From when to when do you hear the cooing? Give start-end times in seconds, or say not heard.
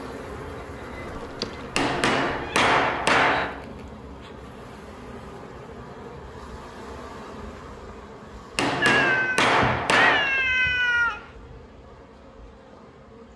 not heard.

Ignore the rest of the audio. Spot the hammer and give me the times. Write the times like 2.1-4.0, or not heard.
1.8-3.5, 8.6-10.3.